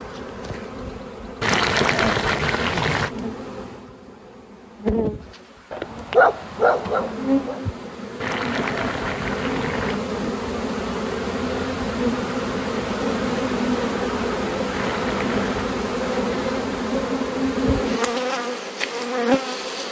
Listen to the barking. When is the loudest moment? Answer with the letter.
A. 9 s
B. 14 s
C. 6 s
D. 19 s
C.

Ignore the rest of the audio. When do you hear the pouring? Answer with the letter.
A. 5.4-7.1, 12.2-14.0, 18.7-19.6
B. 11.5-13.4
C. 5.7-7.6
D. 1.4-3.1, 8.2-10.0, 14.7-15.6
D.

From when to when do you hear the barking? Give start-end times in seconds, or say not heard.
5.7-7.6.